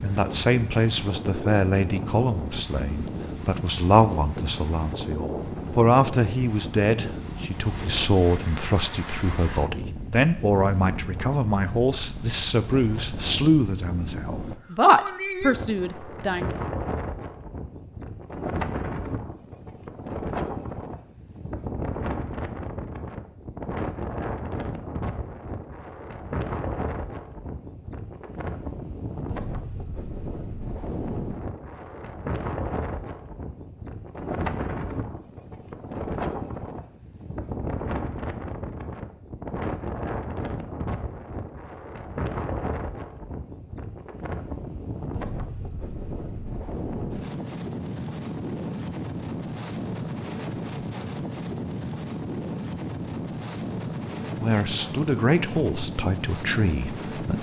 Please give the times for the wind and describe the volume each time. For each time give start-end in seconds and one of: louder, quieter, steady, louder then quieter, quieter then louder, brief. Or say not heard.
0.0-57.3 steady.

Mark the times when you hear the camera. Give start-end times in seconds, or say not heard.
not heard.